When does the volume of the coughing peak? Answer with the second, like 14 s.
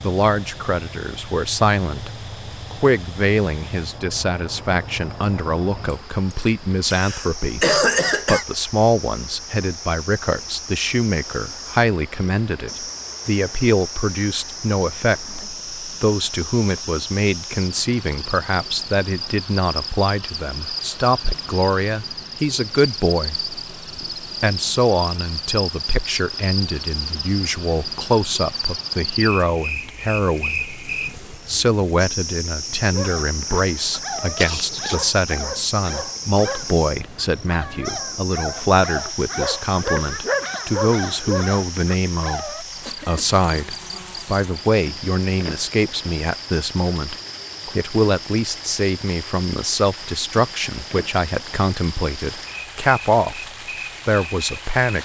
8 s.